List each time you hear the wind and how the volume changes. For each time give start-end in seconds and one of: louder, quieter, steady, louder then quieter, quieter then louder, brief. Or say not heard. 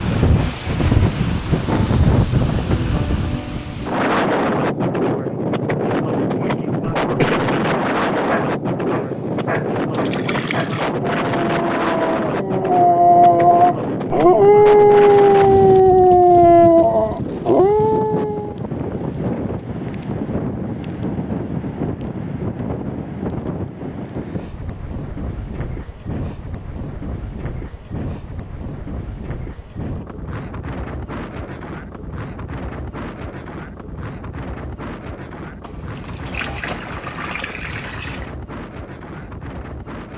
0.0-40.1 quieter.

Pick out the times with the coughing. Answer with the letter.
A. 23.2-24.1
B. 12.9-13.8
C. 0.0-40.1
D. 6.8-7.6
D.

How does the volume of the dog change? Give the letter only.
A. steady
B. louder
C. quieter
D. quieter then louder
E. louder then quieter
B.